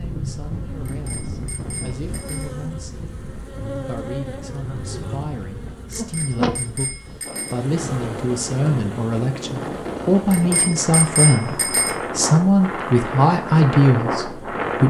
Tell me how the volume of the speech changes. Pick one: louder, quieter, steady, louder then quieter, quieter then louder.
louder.